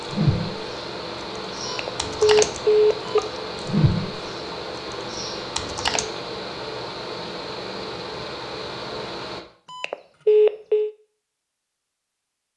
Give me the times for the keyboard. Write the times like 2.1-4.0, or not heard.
0.0-6.0.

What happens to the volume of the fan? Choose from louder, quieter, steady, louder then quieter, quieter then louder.
steady.